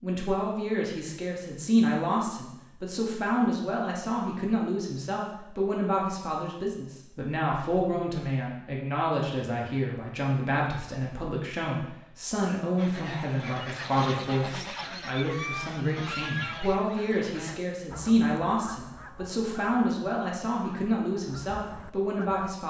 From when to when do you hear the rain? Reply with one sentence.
The rain can't be heard in this clip.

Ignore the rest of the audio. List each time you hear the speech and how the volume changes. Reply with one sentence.
You can hear the speech from 0.0 to 22.6 s, at a steady volume.